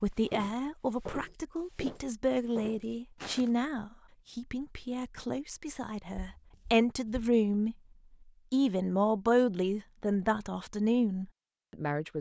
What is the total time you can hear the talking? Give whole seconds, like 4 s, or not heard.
11 s.